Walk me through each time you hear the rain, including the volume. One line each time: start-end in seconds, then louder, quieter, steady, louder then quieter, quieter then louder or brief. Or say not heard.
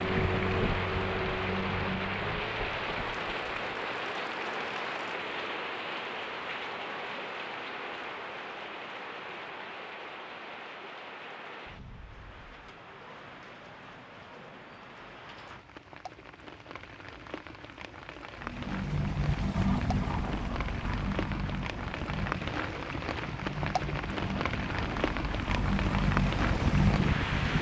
0.0-27.5 quieter then louder.